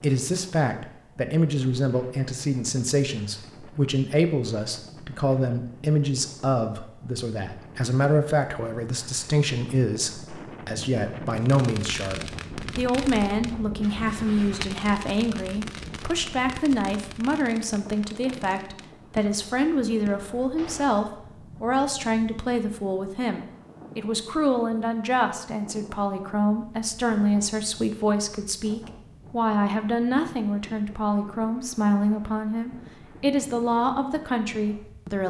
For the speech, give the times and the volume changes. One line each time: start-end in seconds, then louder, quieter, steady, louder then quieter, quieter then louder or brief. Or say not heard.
0.0-35.2 steady.